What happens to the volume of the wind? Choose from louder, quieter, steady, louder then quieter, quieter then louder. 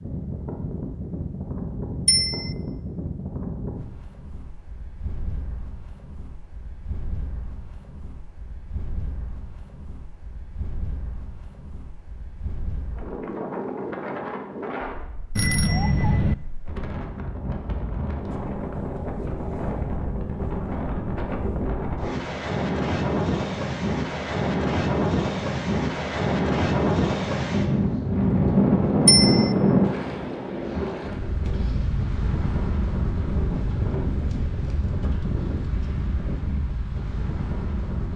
louder then quieter.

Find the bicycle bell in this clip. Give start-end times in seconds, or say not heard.
2.0-2.5, 15.3-16.4, 29.1-29.5.